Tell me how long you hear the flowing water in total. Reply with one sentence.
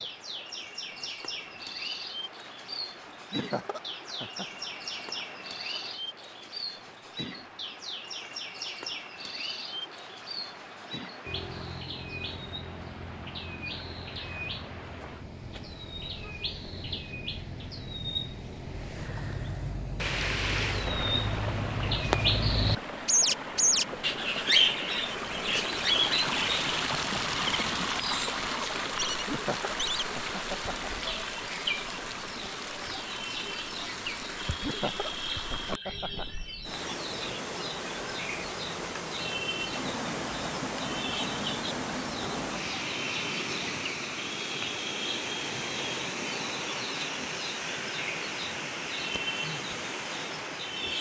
The flowing water can be heard for 51 seconds in total.